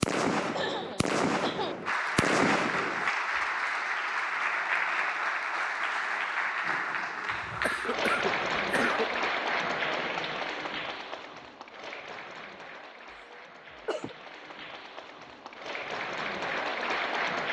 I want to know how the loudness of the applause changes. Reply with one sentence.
The volume of the applause goes down, then up.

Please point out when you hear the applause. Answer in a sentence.
You can hear the applause from 1.9 to 17.4 s.